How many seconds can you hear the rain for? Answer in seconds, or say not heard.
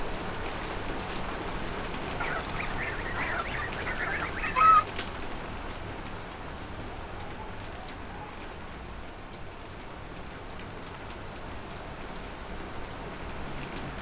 14 s.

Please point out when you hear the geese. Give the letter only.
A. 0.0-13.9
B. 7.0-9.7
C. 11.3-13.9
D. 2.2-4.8
D.